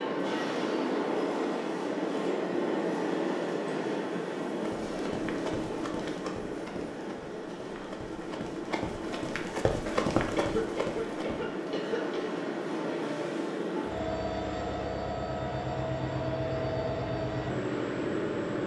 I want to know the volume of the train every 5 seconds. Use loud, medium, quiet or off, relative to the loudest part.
loud, medium, loud, loud.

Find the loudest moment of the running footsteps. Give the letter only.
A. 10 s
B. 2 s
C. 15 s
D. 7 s
A.